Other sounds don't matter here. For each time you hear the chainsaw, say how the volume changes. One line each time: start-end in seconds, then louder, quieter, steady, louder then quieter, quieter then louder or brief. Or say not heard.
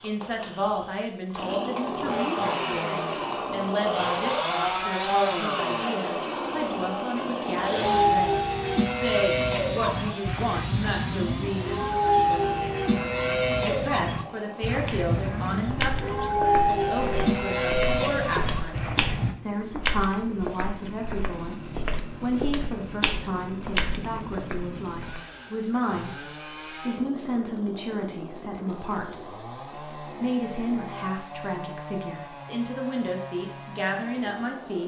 0.0-34.8 quieter.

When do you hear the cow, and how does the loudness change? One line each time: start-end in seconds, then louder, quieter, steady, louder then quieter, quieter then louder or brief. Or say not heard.
7.8-19.4 steady.